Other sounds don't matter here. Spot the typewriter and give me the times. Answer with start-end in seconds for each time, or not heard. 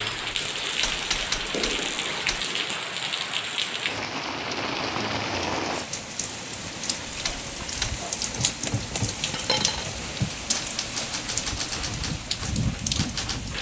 0.1-2.5, 7.0-13.5.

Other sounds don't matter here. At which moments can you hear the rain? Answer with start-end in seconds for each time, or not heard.
0.0-13.5.